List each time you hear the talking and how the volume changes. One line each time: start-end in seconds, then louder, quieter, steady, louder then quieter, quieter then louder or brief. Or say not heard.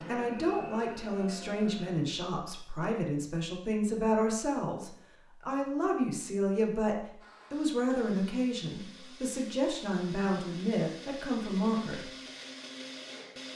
0.1-12.1 steady.